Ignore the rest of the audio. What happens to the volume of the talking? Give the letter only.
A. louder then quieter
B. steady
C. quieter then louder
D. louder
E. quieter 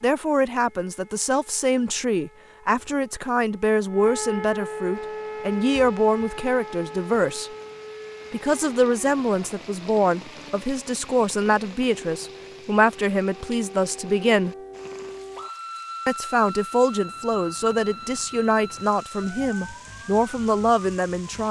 B.